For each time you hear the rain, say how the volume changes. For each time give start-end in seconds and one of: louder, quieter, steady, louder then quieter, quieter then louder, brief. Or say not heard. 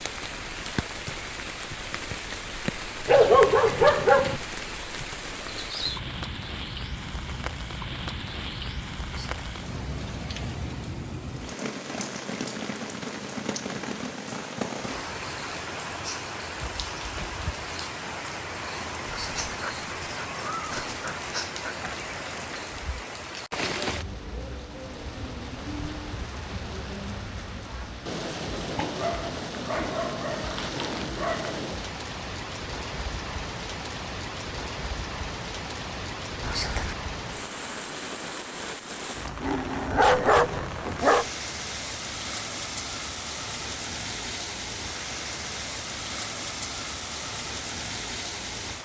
0.0-48.8 steady.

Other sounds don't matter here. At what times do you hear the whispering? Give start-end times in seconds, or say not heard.
9.1-9.5, 19.1-19.6, 36.4-37.0.